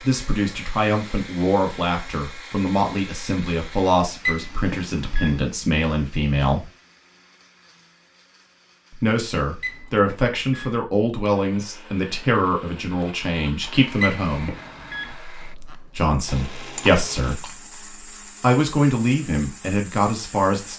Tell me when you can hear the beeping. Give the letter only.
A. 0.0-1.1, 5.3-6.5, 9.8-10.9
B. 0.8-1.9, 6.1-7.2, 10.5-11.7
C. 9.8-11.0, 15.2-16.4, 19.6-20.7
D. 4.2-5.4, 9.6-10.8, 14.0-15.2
D.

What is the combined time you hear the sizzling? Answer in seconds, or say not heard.
not heard.